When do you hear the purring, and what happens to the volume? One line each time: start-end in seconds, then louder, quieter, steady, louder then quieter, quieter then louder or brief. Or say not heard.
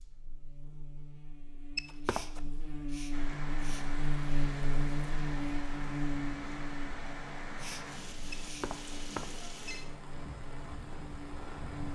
not heard.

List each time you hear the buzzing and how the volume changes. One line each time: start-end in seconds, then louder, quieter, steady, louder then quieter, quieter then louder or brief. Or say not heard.
0.0-11.8 louder then quieter.